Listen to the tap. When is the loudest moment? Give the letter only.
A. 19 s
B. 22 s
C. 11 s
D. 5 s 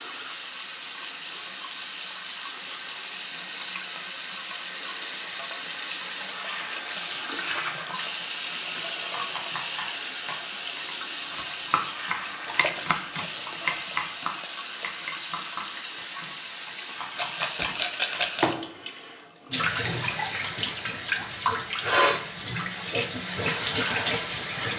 B.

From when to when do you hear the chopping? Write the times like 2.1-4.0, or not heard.
9.1-18.2.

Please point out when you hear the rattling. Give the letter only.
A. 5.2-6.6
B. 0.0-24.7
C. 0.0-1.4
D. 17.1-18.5
D.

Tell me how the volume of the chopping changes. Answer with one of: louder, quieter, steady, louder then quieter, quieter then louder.
louder then quieter.